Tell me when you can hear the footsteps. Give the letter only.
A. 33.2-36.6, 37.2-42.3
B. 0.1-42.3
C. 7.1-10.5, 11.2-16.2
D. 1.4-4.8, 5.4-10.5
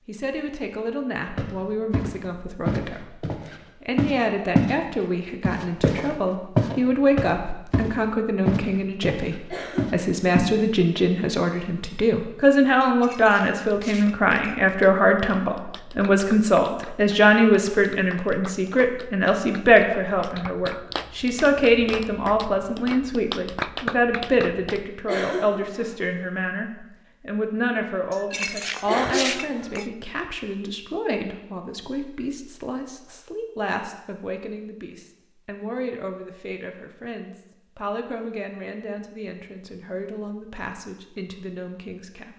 D.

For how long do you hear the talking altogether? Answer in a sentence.
You can hear the talking for 42 seconds altogether.